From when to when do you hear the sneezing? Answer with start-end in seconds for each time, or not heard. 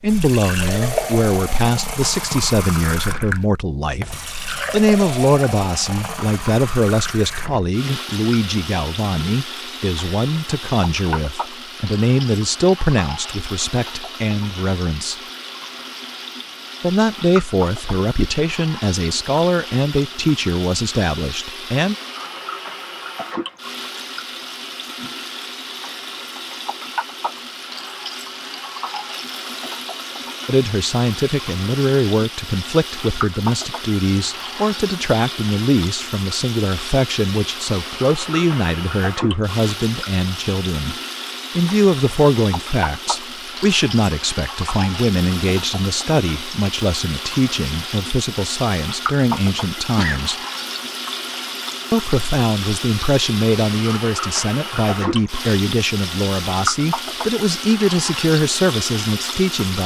49.8-50.2.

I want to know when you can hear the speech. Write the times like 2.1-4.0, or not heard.
0.0-15.2, 16.8-21.9, 30.4-41.0, 41.5-50.4, 51.9-59.8.